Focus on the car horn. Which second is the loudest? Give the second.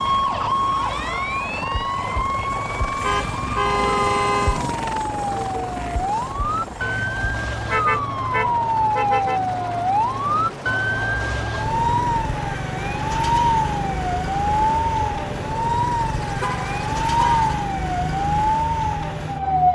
4 s.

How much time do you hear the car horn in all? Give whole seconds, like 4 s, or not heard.
5 s.